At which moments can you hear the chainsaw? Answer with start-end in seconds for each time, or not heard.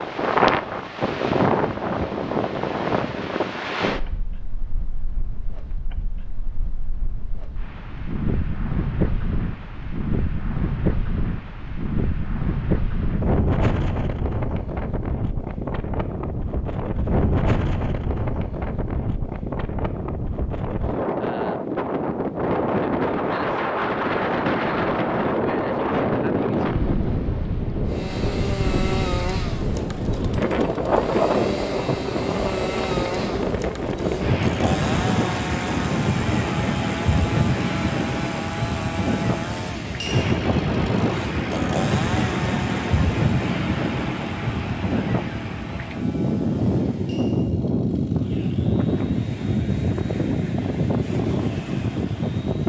27.9-52.6.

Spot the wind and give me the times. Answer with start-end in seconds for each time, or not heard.
0.0-52.6.